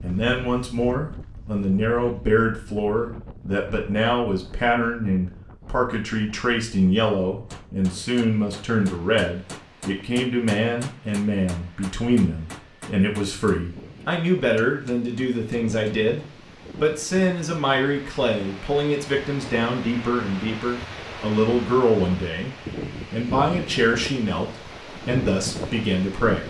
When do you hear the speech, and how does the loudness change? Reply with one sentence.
The speech can be heard from 0.0 to 26.4 s, at a steady volume.